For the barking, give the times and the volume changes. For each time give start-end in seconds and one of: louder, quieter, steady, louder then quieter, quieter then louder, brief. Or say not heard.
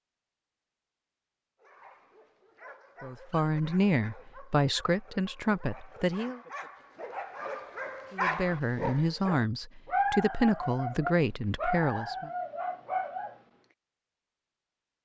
1.6-13.4 louder.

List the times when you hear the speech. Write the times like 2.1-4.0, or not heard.
3.0-6.4, 8.1-12.3.